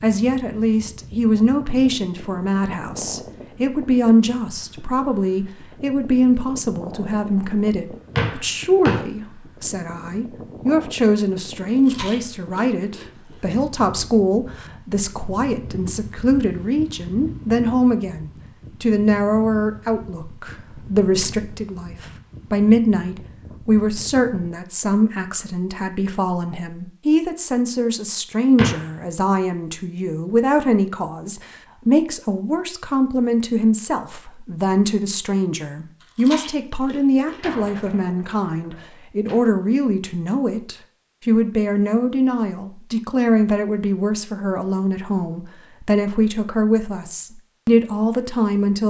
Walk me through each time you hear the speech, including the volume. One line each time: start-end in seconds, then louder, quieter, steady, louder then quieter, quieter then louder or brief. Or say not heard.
0.0-48.8 steady.